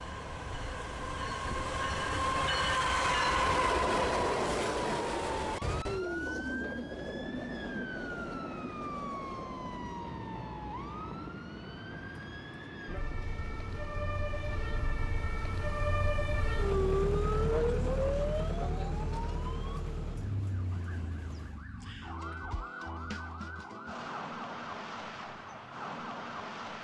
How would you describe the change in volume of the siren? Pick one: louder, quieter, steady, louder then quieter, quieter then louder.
louder then quieter.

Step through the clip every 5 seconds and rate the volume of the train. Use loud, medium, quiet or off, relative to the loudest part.
loud, medium, quiet, quiet, quiet, off.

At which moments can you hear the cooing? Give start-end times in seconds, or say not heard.
not heard.